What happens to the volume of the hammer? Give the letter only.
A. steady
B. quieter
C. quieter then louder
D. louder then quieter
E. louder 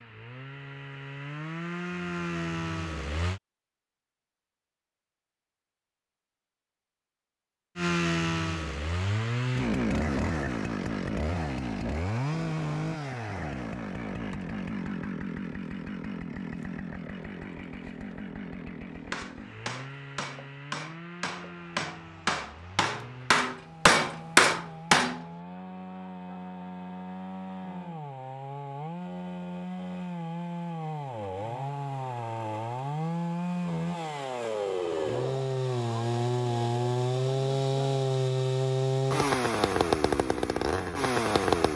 E.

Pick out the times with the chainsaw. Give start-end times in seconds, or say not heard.
0.0-3.4, 7.8-41.7.